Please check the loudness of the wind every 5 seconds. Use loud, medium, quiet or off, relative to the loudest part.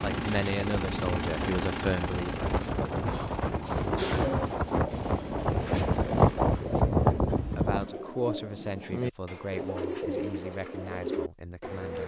medium, loud, off.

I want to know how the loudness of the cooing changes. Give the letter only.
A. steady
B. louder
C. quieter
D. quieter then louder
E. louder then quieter
D.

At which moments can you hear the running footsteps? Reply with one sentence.
You can't hear the running footsteps here.